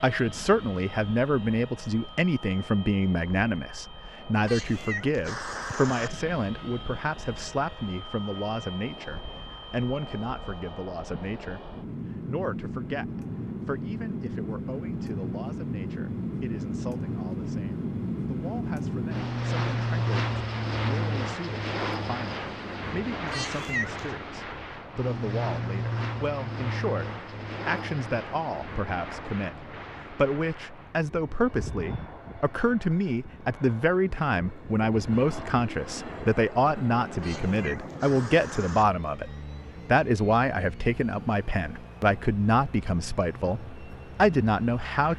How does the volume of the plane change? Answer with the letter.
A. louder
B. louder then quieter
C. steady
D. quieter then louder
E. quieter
B.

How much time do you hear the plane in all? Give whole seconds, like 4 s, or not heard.
45 s.